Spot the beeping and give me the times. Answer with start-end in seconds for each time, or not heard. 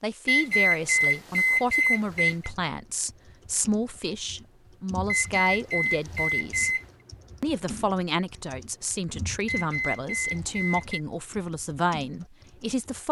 0.2-2.5, 5.0-6.8, 9.4-11.0.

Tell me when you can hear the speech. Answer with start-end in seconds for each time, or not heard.
0.0-6.8, 7.4-13.0.